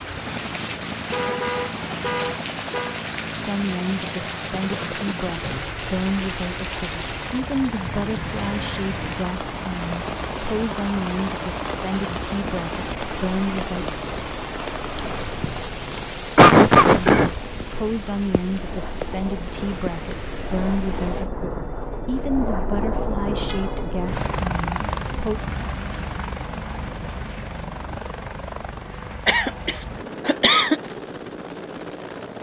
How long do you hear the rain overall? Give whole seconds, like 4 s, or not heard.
21 s.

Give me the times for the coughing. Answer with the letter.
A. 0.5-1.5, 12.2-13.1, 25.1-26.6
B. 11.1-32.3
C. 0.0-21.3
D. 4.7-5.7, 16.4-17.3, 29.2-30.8
D.